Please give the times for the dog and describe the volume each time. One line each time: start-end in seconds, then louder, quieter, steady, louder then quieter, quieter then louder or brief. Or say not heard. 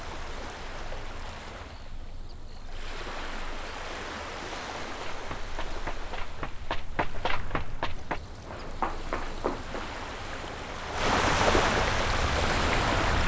not heard.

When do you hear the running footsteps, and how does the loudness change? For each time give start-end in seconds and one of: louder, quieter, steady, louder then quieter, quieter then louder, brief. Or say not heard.
4.8-9.8 louder.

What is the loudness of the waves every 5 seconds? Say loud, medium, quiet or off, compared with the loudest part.
quiet, quiet, loud.